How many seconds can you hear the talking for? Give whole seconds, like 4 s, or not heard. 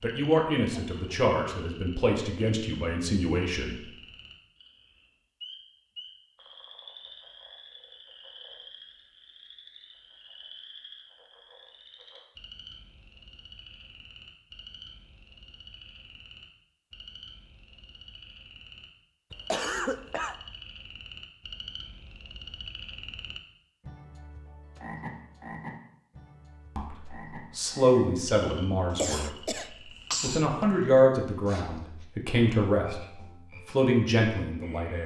11 s.